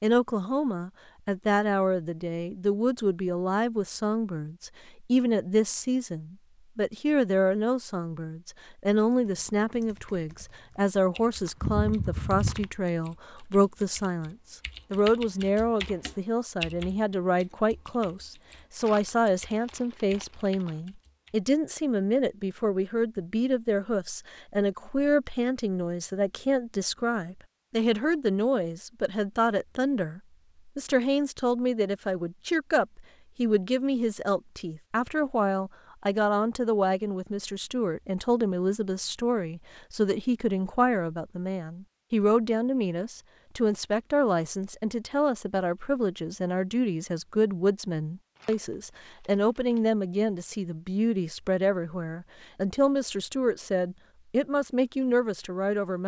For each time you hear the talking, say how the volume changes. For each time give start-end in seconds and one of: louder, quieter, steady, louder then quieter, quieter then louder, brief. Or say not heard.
0.0-56.0 steady.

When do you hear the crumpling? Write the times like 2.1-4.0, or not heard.
11.4-12.7, 18.8-20.7, 48.4-49.8.